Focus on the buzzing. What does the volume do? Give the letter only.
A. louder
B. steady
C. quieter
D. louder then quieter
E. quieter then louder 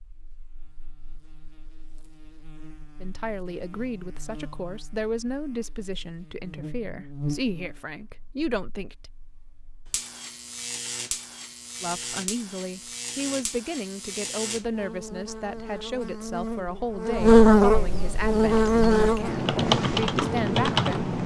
A.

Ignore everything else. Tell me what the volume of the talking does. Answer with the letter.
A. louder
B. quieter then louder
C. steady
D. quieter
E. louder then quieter
C.